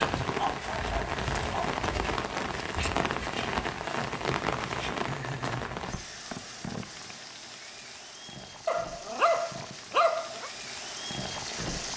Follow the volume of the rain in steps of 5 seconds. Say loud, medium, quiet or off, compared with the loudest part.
loud, medium, medium.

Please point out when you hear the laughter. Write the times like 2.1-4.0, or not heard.
5.0-5.7.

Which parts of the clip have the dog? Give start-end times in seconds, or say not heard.
0.3-1.7, 8.7-10.5.